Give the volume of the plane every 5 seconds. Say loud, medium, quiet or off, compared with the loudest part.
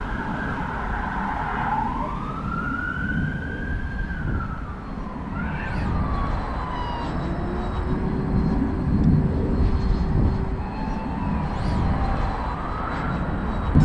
medium, loud, loud.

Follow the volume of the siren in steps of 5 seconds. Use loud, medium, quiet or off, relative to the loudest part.
loud, medium, medium.